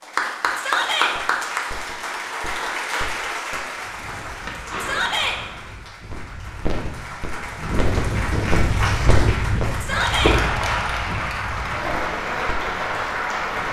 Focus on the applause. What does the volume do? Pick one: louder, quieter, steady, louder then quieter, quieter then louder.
quieter then louder.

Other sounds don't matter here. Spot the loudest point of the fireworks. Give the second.
10 s.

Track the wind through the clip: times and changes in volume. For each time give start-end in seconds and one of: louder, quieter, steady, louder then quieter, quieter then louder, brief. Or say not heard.
3.8-13.6 louder then quieter.